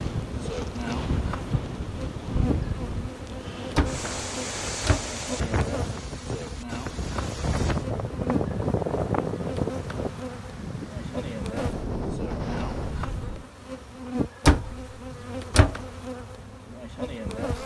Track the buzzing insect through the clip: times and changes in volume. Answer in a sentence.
The buzzing insect can be heard from 0.0 to 17.6 s, at a steady volume.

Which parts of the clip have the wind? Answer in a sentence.
You can hear the wind from 0.0 to 13.4 s.